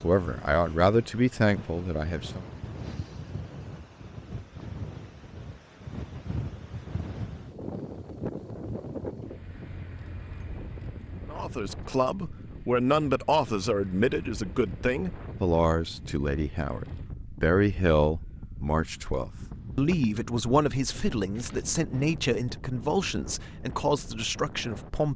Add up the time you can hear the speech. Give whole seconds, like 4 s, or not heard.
16 s.